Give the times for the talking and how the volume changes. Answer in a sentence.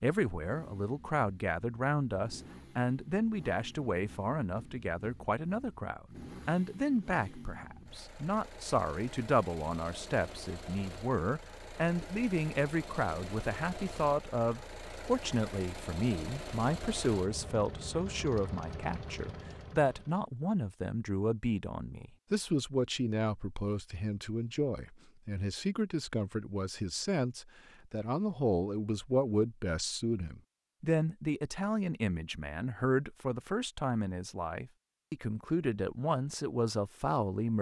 You can hear the talking from 0.0 to 37.5 s, at a steady volume.